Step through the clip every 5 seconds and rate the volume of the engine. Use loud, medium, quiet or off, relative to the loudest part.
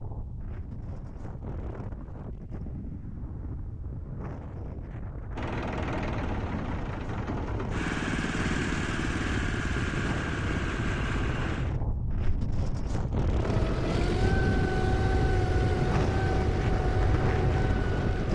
off, loud, loud, loud.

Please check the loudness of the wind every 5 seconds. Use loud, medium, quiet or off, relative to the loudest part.
medium, medium, loud, loud.